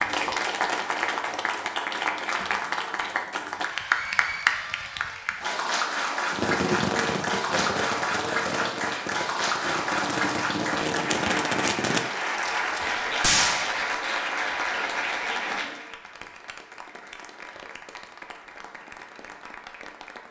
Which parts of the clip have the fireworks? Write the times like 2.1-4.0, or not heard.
6.3-13.9.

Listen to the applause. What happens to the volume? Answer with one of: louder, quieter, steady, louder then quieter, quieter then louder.
quieter.